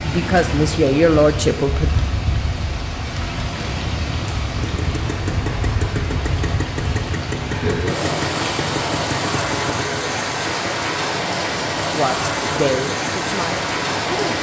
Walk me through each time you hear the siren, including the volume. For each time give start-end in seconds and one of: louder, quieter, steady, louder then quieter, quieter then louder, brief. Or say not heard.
not heard.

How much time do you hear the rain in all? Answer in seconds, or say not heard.
14 s.